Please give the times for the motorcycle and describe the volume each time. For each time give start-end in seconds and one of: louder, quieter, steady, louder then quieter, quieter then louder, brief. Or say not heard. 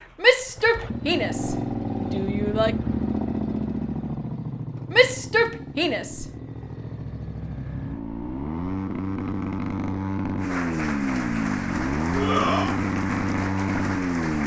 0.0-14.4 quieter then louder.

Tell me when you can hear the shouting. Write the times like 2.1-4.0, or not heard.
0.2-2.8, 4.9-6.2, 12.1-12.8.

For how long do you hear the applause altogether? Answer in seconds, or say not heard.
4 s.